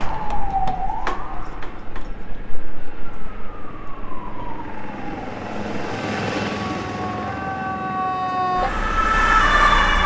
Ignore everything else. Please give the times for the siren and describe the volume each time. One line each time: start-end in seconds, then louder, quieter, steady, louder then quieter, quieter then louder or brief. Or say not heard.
0.0-10.0 quieter then louder.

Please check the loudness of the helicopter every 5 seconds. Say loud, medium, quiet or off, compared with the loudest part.
medium, loud.